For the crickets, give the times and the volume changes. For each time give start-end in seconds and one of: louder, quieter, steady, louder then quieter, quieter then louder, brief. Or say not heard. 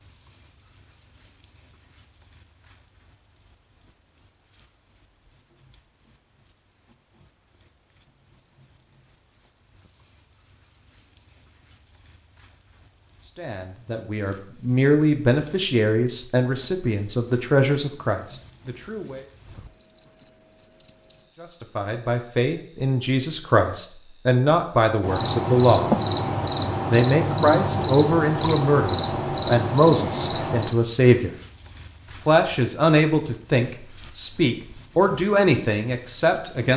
0.0-36.7 louder.